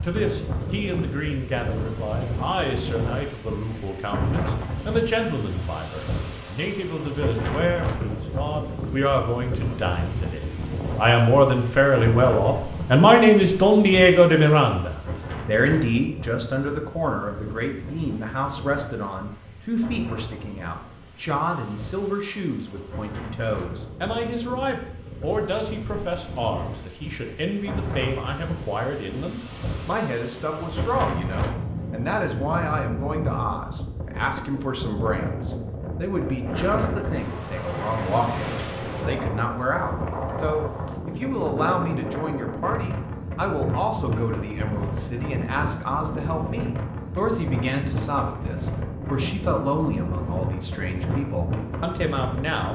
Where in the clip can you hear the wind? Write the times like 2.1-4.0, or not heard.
0.0-52.6.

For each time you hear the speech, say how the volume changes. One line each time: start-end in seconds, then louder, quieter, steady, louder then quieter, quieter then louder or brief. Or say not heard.
0.0-52.6 louder then quieter.